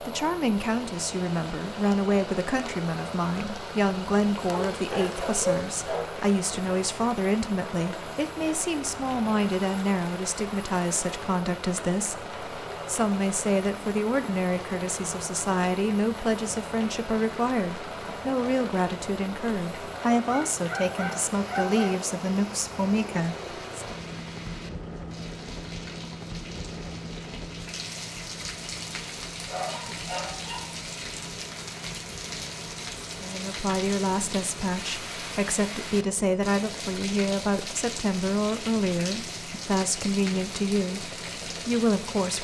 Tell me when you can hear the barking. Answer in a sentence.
The barking can be heard from 4.5 to 6.0 s, from 20.2 to 21.9 s and from 29.4 to 30.8 s.